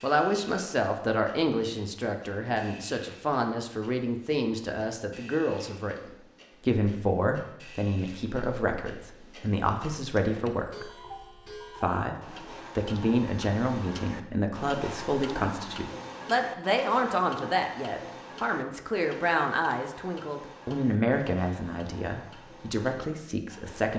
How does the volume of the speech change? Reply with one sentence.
The volume of the speech stays about the same.